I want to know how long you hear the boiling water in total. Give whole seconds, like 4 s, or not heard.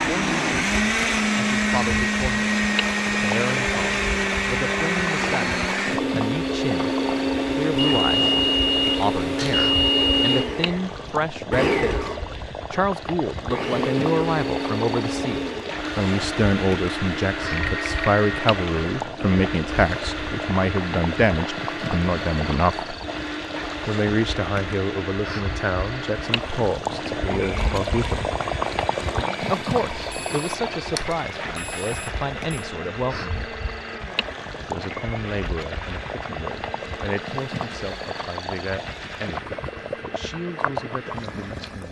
42 s.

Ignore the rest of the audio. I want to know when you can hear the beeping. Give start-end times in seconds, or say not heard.
7.8-10.5, 17.4-18.2, 30.1-32.6.